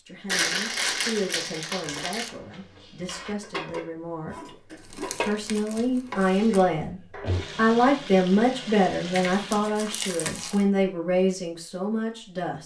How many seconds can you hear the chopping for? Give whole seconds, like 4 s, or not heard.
not heard.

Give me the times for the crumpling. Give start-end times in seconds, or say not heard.
0.2-2.3, 4.7-6.6, 9.1-10.7.